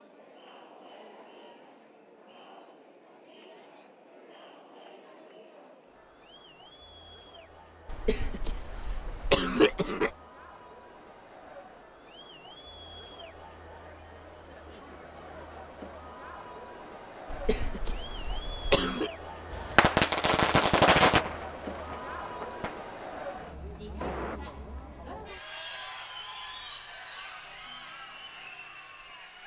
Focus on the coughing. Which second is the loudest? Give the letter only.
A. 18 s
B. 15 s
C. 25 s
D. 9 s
D.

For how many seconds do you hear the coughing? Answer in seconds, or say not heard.
4 s.